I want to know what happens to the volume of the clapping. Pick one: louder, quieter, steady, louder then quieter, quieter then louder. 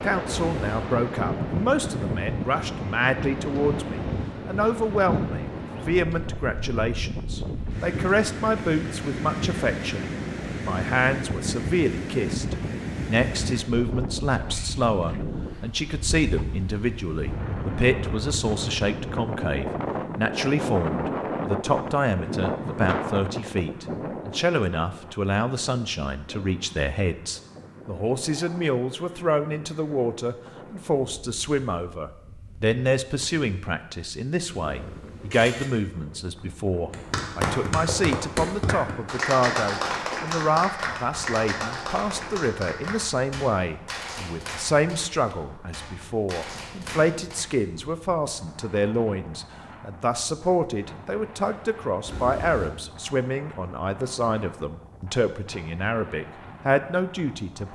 quieter.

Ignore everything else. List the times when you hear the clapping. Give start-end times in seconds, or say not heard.
36.9-47.5.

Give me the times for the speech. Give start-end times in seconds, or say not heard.
0.0-57.6.